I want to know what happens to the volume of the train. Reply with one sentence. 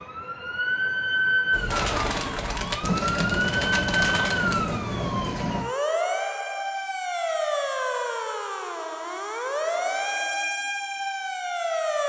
The volume of the train goes up.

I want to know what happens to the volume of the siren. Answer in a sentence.
The loudness of the siren stays about the same.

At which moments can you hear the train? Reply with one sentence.
You can hear the train from 1.5 to 5.7 s.